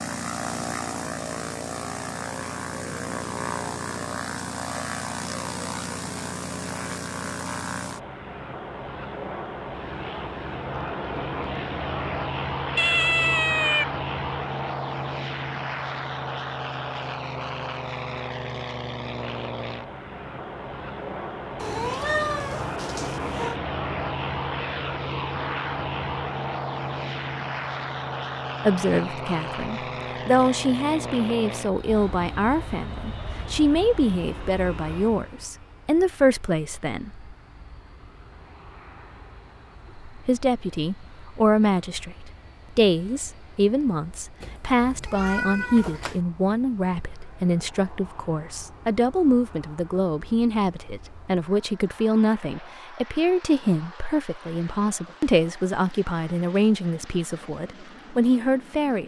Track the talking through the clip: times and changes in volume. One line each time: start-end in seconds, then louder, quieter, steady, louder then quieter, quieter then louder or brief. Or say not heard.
28.6-37.3 steady
40.0-59.0 steady.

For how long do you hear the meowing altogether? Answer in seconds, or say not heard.
5 s.